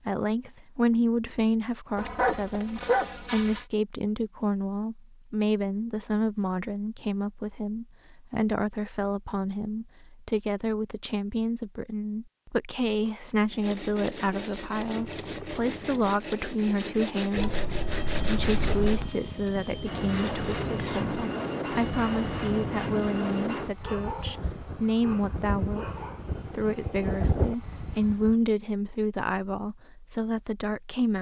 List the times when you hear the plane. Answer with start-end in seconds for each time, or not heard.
17.9-28.4.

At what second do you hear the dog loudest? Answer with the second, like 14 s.
3 s.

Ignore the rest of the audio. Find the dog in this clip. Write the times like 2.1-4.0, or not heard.
1.9-3.6, 17.4-19.1, 23.8-26.2.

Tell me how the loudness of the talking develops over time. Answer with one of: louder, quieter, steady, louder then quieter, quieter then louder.
steady.